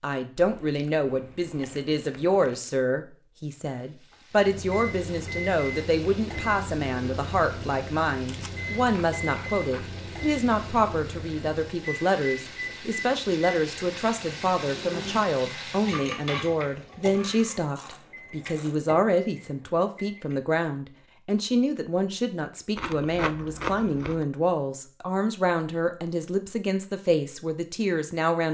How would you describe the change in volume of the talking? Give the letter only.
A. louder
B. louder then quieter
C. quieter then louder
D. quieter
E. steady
E.